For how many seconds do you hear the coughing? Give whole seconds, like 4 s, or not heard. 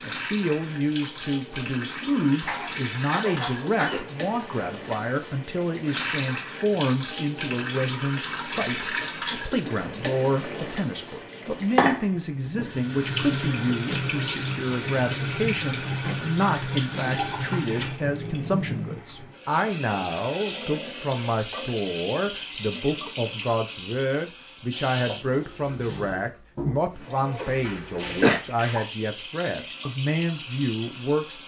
4 s.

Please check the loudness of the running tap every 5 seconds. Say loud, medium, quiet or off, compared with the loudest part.
medium, loud, loud, loud, medium, medium, medium.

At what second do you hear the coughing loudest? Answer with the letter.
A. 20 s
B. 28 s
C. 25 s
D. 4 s
B.